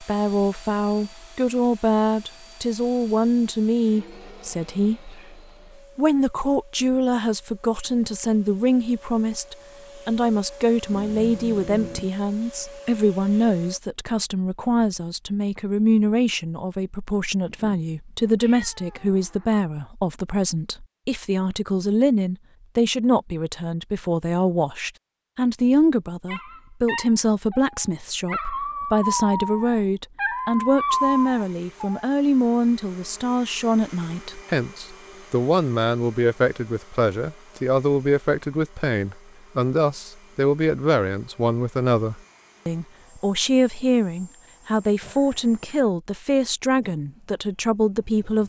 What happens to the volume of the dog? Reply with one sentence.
The volume of the dog goes up.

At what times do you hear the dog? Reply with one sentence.
You can hear the dog from 26.2 to 32.0 s.